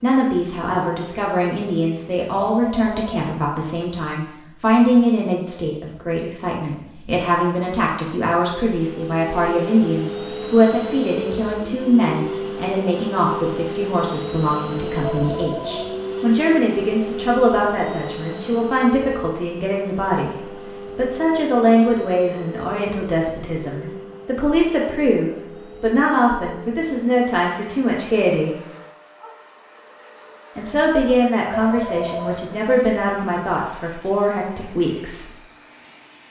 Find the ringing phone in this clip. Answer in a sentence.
The ringing phone can be heard from 2.4 to 3.2 s, from 15.0 to 15.8 s and from 31.5 to 32.4 s.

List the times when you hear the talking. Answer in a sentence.
The talking can be heard from 0.0 to 28.6 s and from 30.6 to 35.3 s.